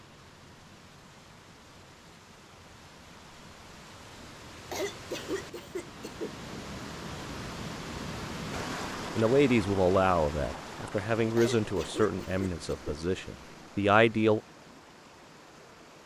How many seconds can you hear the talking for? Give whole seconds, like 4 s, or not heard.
5 s.